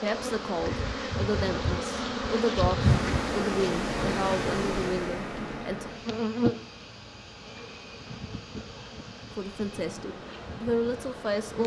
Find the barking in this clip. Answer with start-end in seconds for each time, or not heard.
not heard.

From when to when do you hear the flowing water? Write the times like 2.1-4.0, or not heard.
2.8-11.6.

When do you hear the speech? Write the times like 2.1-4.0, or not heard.
0.0-5.9, 9.3-11.6.